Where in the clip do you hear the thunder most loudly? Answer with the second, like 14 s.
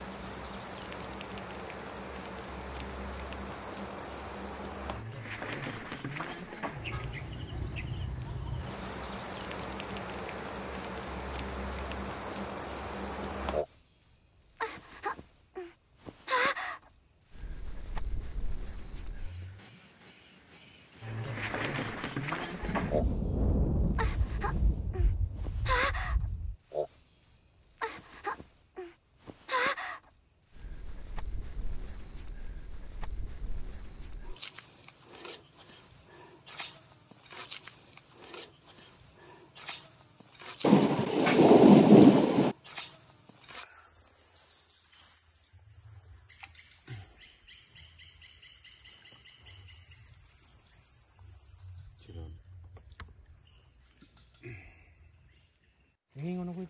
42 s.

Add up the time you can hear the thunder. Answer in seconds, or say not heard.
6 s.